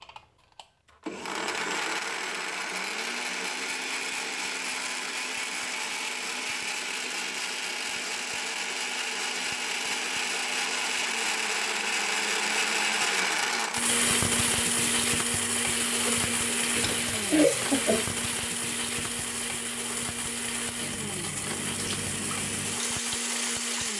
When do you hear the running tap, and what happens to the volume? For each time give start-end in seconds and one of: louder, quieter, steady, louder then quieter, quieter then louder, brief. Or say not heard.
13.8-23.9 quieter then louder.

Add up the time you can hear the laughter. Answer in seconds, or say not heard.
2 s.